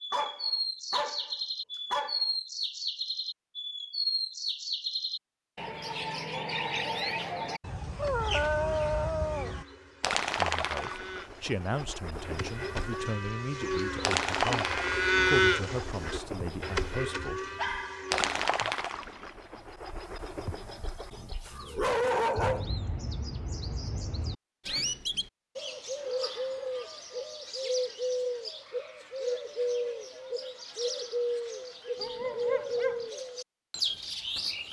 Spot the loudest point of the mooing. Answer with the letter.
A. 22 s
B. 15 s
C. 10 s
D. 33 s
B.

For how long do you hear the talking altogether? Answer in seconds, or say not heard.
7 s.